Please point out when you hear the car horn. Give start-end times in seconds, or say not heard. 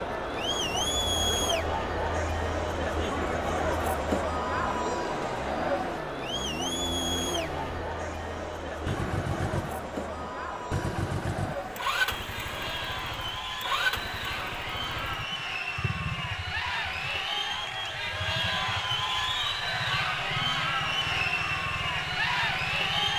not heard.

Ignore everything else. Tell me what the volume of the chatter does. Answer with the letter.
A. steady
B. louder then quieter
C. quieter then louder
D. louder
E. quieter
C.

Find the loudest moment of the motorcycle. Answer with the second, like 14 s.
12 s.